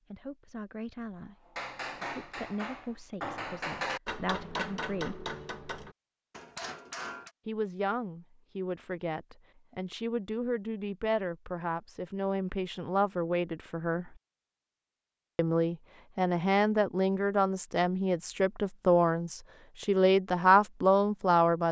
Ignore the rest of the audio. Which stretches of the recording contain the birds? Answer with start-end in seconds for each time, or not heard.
not heard.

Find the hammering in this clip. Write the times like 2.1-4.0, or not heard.
1.1-7.3.